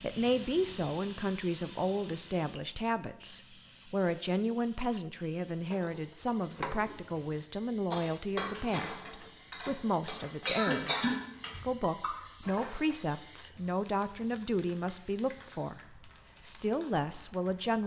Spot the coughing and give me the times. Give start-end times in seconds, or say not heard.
10.4-12.1.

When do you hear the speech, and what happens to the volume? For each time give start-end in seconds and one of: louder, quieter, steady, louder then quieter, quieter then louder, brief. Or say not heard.
0.0-17.8 steady.